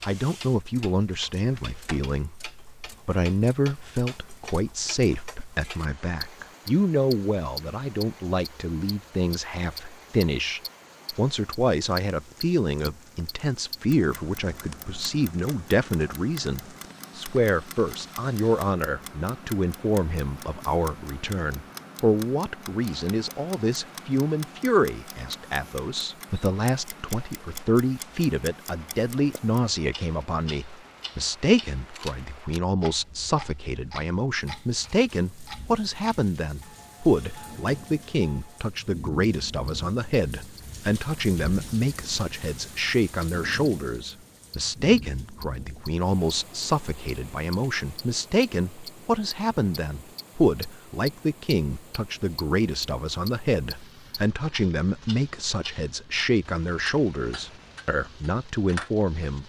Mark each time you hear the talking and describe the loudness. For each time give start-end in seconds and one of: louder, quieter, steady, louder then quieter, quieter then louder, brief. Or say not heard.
0.0-59.4 steady.